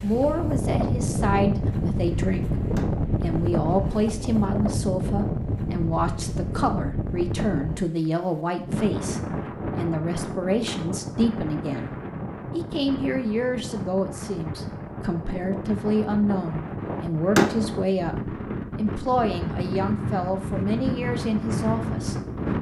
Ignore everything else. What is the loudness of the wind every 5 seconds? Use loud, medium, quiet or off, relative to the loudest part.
loud, loud, medium, medium, loud.